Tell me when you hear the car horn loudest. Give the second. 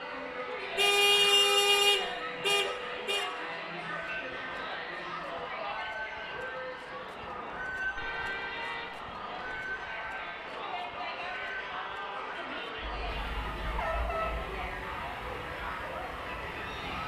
1 s.